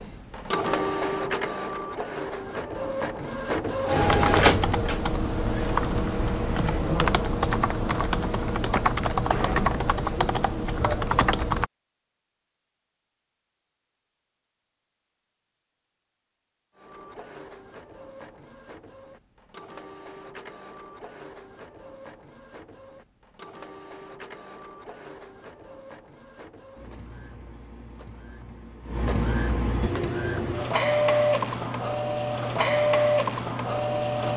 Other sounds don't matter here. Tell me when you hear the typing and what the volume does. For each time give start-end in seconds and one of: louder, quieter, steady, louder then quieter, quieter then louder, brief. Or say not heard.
4.0-11.7 steady.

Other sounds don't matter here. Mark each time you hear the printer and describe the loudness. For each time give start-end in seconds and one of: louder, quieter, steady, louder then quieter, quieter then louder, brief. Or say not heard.
0.0-5.0 quieter then louder
16.8-34.3 louder.